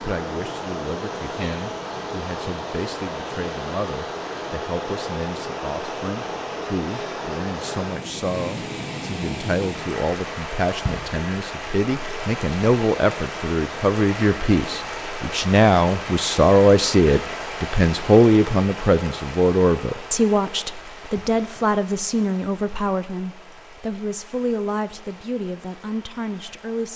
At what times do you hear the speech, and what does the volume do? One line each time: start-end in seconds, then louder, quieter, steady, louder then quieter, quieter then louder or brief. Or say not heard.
0.0-26.9 louder then quieter.